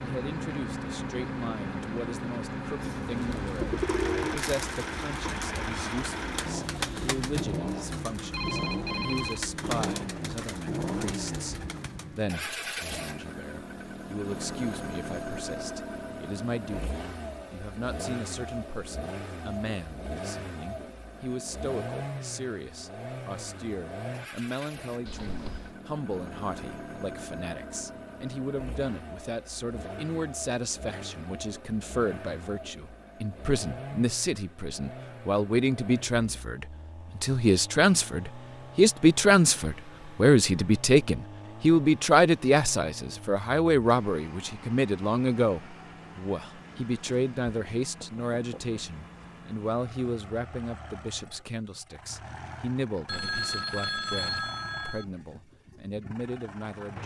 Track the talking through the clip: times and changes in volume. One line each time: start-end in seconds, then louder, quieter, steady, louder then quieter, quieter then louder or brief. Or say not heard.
0.0-57.0 louder then quieter.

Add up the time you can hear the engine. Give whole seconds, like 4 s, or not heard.
57 s.